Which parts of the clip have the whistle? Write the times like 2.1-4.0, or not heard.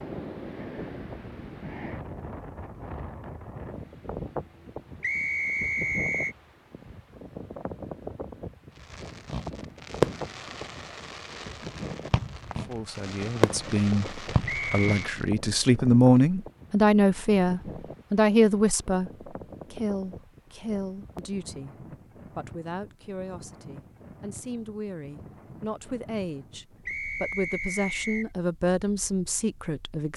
5.0-6.3, 14.4-14.9, 26.9-28.3.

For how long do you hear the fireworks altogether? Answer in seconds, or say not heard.
6 s.